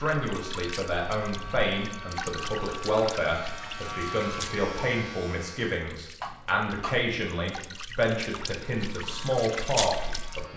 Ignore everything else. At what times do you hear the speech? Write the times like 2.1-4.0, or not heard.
0.0-10.5.